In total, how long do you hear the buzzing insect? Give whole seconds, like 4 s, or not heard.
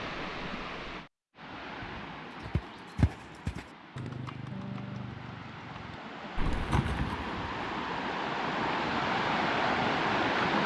not heard.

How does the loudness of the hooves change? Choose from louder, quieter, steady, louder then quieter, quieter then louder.
quieter then louder.